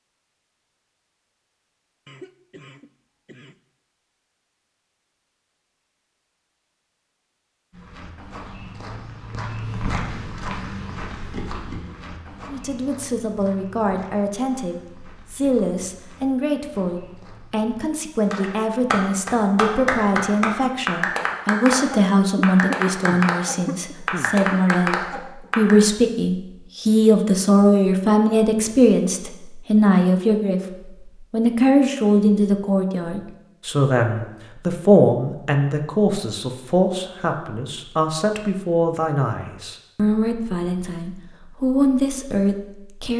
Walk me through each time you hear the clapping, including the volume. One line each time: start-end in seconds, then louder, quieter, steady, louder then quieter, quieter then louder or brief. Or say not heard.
18.3-25.9 steady.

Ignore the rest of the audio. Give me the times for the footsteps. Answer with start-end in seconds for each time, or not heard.
7.7-17.9.